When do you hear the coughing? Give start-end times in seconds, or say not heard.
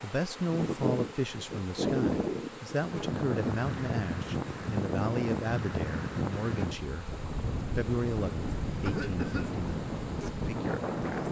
8.8-9.6.